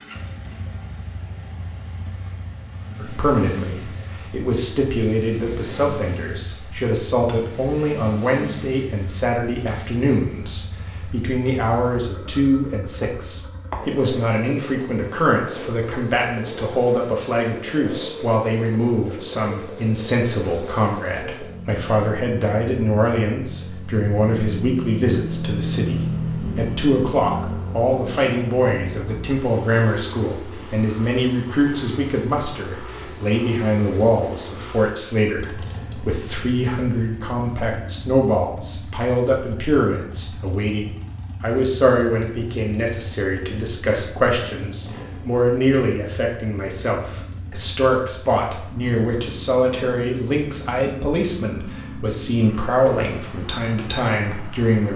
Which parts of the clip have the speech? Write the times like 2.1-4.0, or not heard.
3.0-54.9.